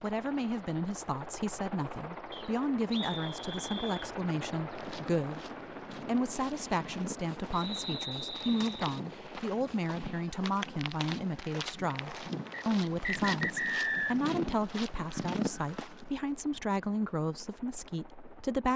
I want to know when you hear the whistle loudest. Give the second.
14 s.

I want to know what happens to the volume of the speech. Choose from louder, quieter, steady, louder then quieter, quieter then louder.
steady.